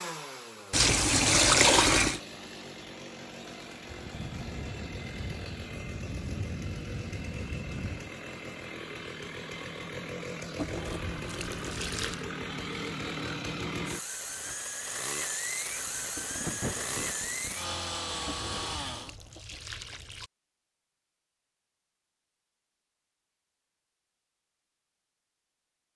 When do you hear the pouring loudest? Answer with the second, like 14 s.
2 s.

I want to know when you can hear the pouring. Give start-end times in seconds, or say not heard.
0.7-2.2, 10.6-12.2, 18.2-20.3.